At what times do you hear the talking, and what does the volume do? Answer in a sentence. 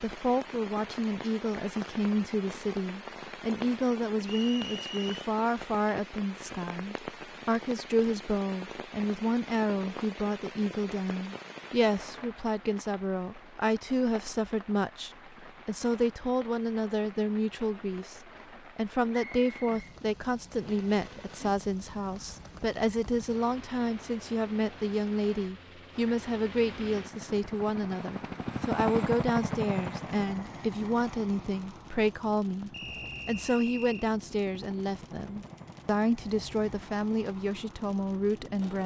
You can hear the talking from 0.0 to 38.8 s, at a steady volume.